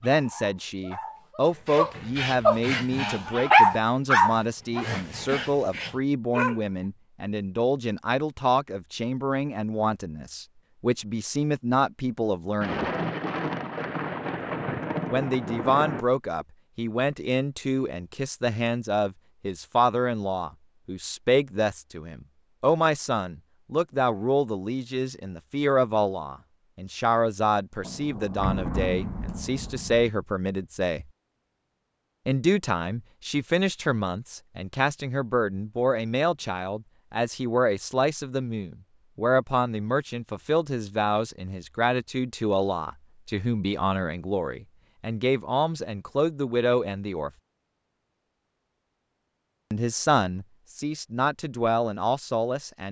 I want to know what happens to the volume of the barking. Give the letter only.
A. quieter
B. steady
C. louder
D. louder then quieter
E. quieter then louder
D.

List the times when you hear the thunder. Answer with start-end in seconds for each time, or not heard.
12.6-16.1, 27.8-30.1.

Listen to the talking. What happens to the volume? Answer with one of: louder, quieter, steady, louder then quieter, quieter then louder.
steady.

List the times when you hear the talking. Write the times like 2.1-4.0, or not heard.
0.0-12.9, 15.1-31.1, 32.2-47.3, 49.7-52.8.